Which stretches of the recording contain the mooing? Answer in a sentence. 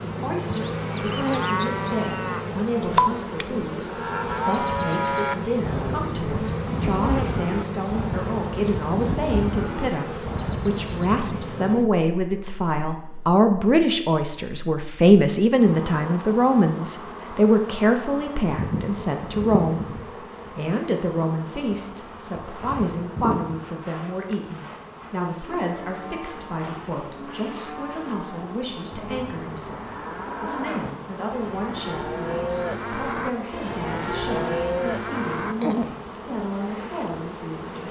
The mooing can be heard from 0.5 to 11.5 s and from 25.5 to 36.0 s.